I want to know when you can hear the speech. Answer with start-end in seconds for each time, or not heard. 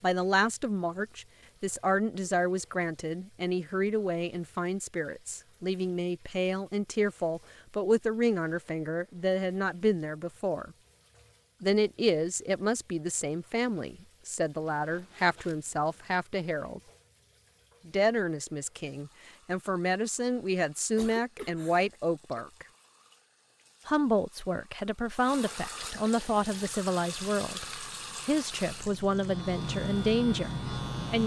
0.0-10.7, 11.6-16.8, 17.9-22.6, 23.9-31.2.